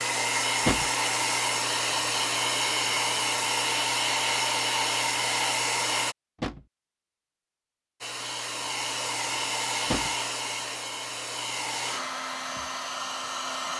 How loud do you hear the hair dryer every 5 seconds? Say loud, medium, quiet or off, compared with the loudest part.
loud, loud, medium.